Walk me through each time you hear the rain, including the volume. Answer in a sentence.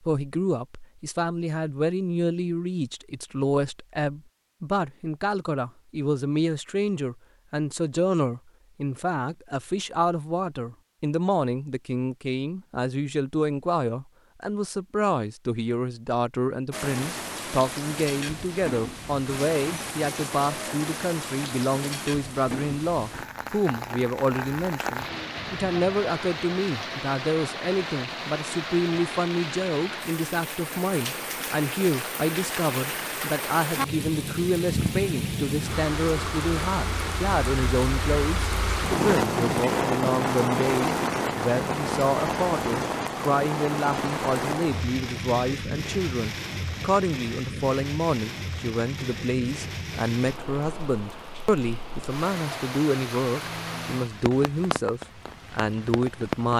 You can hear the rain from 16.7 to 56.5 s, getting louder then quieter.